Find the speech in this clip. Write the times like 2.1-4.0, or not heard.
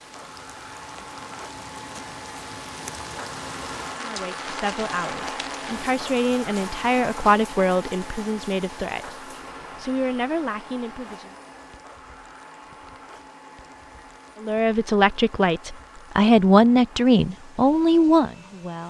4.0-11.3, 14.4-18.8.